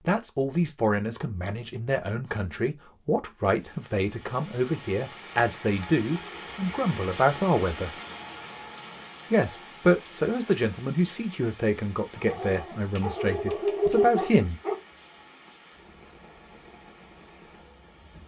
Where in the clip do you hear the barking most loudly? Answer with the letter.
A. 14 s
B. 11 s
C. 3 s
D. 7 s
A.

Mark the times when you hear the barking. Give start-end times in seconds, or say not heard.
12.2-14.8.